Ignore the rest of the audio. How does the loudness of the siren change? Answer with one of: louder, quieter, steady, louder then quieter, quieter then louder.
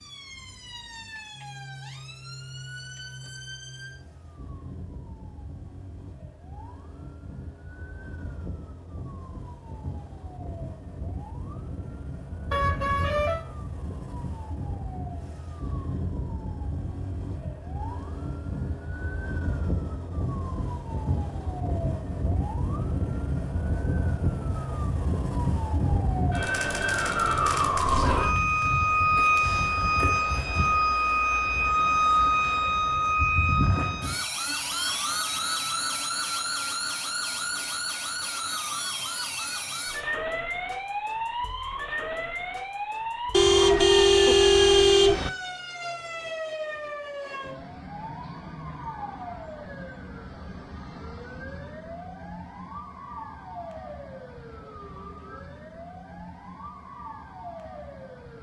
louder then quieter.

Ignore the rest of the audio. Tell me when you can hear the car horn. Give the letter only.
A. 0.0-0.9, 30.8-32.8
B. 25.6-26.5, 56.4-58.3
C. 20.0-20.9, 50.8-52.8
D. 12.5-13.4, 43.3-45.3
D.